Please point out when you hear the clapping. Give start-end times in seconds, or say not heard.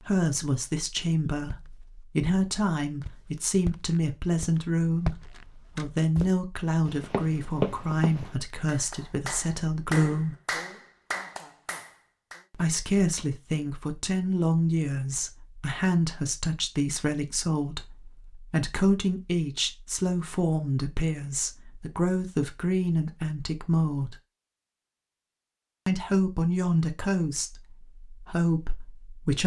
8.7-12.4.